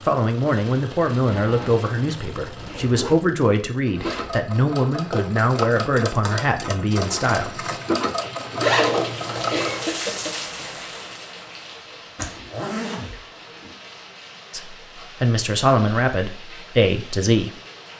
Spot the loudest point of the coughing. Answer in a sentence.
The volume of the coughing peaks at 10 seconds.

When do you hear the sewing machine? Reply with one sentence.
You can hear the sewing machine from 0.0 to 9.8 s.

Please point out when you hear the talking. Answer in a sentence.
The talking can be heard from 0.1 to 7.7 s and from 14.5 to 17.5 s.